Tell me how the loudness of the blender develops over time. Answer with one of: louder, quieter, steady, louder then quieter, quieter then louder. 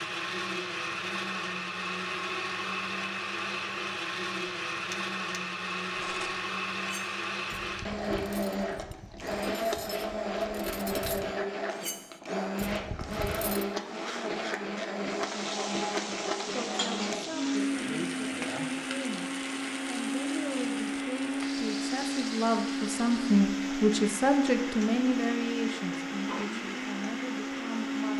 steady.